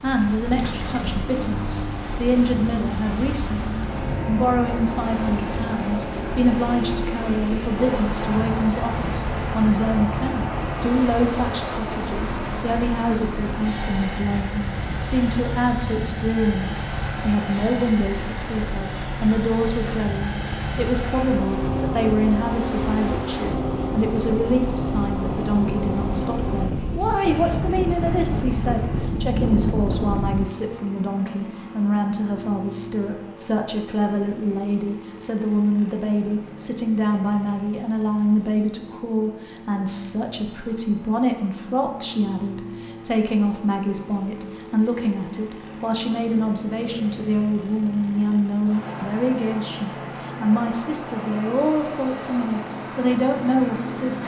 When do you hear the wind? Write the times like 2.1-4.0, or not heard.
0.0-30.5.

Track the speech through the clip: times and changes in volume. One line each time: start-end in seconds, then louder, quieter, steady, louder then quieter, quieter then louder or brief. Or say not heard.
0.0-54.2 steady.